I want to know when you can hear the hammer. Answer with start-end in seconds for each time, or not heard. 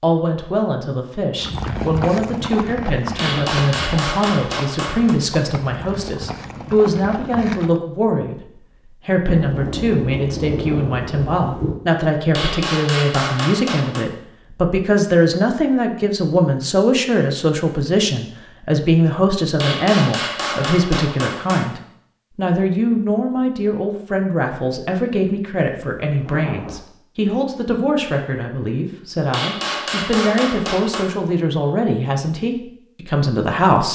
3.1-5.2, 12.3-14.1, 19.6-21.7, 29.3-31.1.